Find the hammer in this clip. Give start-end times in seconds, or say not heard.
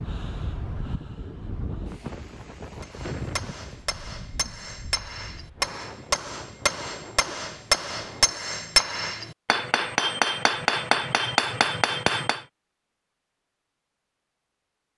2.8-12.4.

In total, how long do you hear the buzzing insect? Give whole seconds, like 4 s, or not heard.
not heard.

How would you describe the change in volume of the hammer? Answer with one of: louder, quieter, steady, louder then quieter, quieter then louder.
louder.